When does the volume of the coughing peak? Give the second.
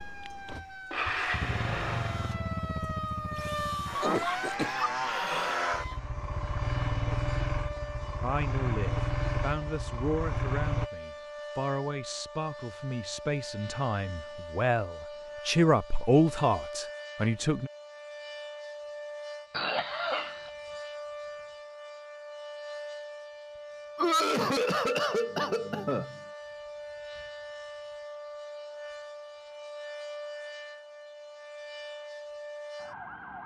24 s.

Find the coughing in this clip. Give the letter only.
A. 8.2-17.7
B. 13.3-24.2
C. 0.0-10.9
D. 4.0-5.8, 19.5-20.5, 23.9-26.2
D.